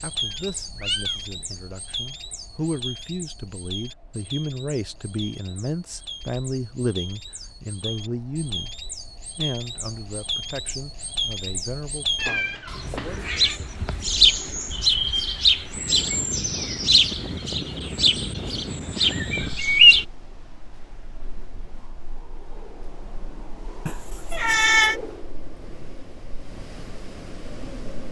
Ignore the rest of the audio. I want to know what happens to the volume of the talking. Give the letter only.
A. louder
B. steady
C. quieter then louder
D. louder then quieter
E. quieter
D.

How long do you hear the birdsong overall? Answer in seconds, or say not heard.
20 s.